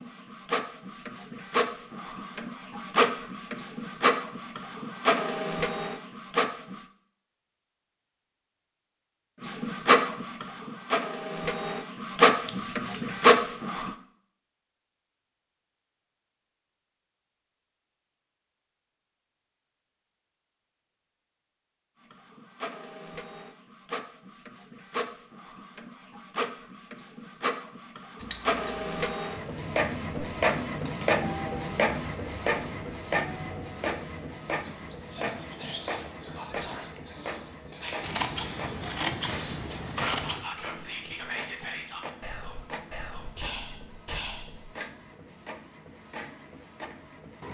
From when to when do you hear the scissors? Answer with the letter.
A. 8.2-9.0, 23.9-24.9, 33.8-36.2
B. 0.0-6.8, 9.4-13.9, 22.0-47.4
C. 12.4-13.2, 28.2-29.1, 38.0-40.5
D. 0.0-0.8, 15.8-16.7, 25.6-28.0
C.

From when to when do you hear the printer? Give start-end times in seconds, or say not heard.
0.0-6.8, 9.4-13.9, 22.0-47.4.